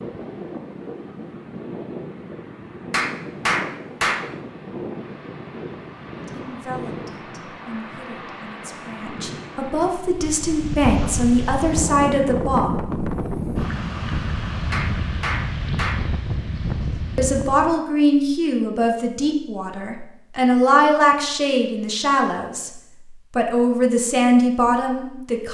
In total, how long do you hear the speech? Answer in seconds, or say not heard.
15 s.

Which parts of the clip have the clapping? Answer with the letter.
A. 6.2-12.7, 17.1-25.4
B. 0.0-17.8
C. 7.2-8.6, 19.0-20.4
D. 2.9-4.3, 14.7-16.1
D.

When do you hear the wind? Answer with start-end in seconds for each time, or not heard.
0.0-17.8.